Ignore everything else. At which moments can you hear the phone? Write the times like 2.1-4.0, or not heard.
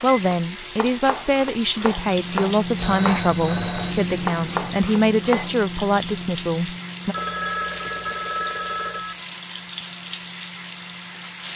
2.8-4.1, 7.1-9.2.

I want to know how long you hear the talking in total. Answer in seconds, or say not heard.
7 s.